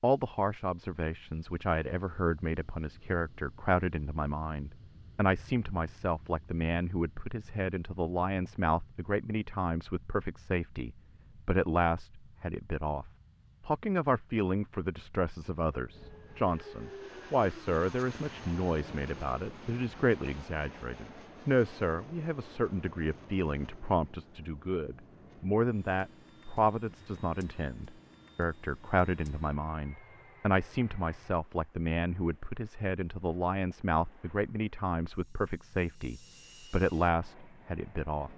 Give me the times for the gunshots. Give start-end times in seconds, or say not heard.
not heard.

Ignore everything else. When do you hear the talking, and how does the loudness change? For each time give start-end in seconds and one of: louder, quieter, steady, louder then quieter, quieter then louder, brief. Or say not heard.
0.0-38.3 steady.